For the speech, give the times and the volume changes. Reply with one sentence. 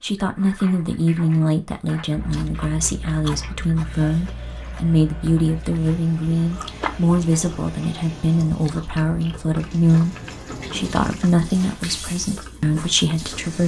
You can hear the speech from 0.0 to 13.6 s, at a steady volume.